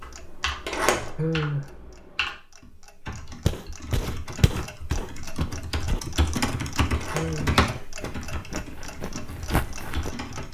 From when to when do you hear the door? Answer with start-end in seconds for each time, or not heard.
0.6-1.2, 6.9-7.8.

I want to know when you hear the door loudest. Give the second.
1 s.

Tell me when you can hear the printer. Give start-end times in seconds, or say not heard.
not heard.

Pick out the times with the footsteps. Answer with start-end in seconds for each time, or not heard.
3.5-6.0, 8.0-10.4.